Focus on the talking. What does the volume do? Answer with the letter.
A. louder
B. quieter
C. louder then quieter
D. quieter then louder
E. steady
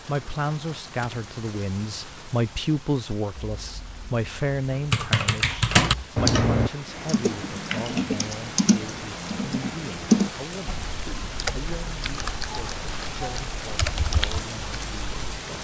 B.